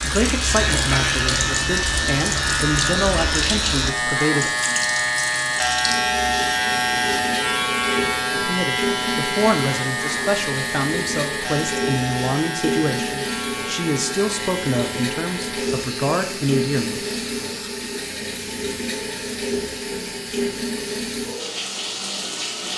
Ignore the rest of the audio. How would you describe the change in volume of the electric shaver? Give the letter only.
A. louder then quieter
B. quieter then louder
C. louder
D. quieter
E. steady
D.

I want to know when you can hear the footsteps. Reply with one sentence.
You can't hear the footsteps here.